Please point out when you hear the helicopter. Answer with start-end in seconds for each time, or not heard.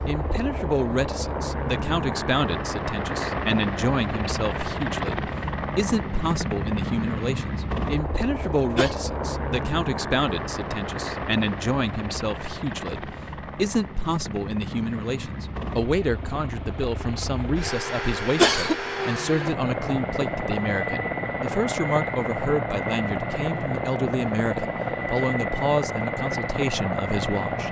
0.0-27.6.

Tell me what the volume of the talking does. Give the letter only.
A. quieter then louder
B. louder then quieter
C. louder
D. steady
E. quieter
D.